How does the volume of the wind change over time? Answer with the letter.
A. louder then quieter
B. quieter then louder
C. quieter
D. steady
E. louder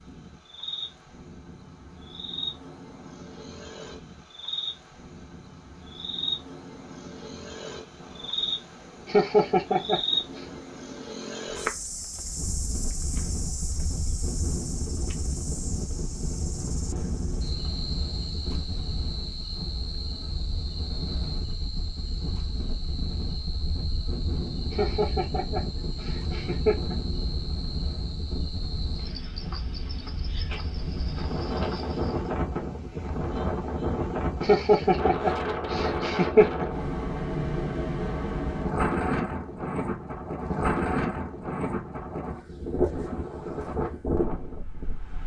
E.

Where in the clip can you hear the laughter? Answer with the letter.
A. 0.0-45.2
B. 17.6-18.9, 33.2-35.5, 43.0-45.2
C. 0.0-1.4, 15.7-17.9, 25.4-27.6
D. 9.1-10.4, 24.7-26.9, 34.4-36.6
D.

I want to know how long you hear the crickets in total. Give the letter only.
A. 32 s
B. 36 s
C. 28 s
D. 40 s
A.